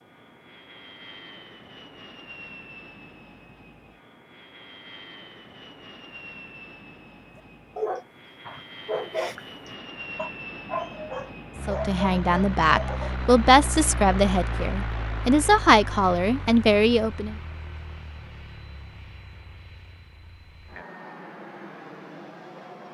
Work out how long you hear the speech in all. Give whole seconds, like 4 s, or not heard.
6 s.